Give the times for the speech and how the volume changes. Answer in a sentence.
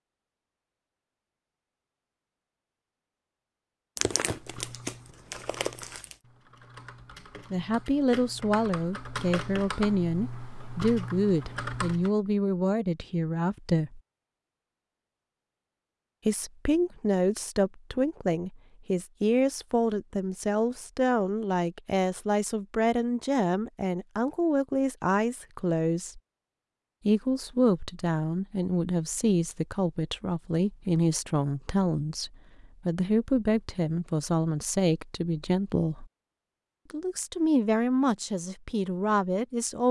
You can hear the speech from 7.5 to 14.0 s, at a steady volume; from 16.2 to 26.2 s, at a steady volume; from 27.1 to 36.0 s, at a steady volume; and briefly from 36.9 to 39.8 s.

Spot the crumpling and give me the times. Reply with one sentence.
You can hear the crumpling from 4.0 to 6.2 s.